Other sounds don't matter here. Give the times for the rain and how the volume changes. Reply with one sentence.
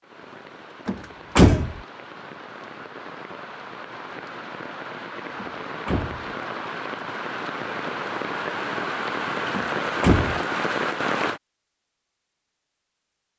You can hear the rain from 0.0 to 11.4 s, getting louder.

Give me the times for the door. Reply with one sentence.
The door can be heard from 0.8 to 1.8 s, from 5.3 to 6.2 s and from 9.6 to 10.4 s.